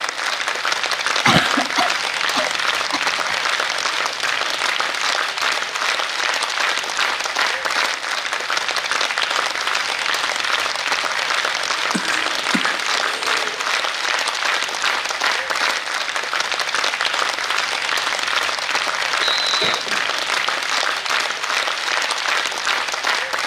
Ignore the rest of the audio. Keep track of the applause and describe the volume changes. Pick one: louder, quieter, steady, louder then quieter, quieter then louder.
steady.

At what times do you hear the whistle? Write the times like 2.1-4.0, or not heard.
19.2-19.8.